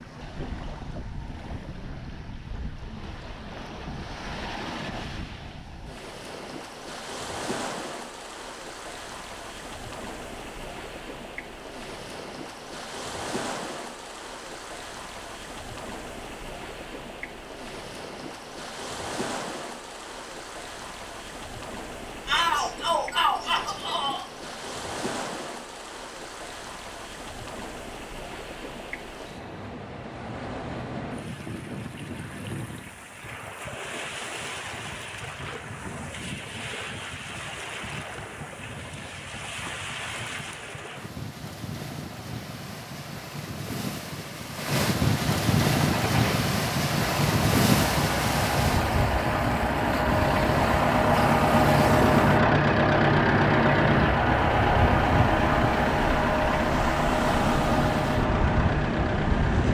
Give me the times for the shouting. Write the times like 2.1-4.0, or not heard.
22.2-24.2.